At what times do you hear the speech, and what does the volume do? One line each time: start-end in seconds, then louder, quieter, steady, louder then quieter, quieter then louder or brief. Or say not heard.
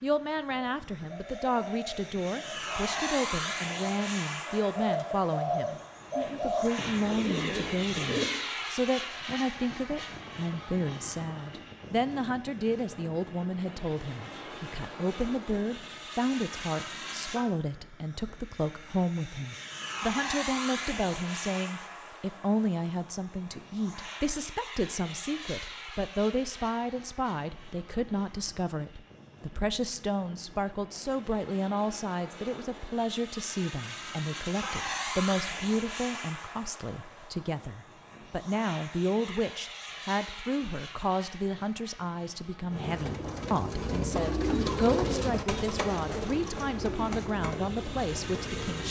0.0-48.8 steady.